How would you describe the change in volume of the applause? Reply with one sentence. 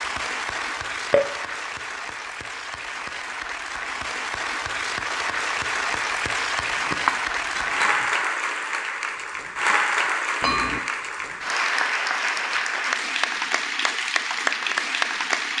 The loudness of the applause goes up.